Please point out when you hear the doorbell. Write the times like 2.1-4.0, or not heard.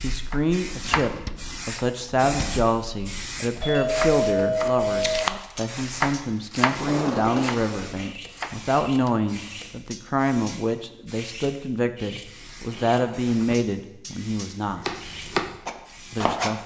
3.5-5.2.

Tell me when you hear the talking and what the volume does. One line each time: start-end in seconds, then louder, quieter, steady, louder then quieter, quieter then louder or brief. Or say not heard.
0.0-14.8 steady
16.1-16.6 brief.